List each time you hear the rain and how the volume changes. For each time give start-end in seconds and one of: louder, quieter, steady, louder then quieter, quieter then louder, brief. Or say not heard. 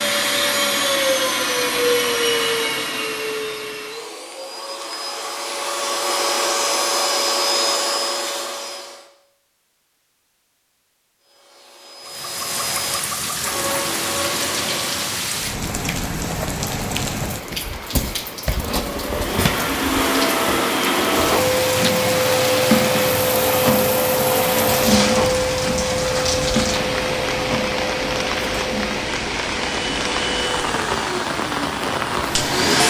12.1-32.8 steady.